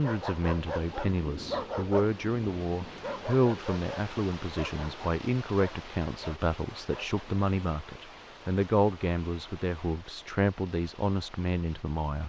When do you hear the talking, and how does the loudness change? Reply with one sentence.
You can hear the talking from 0.0 to 12.2 s, at a steady volume.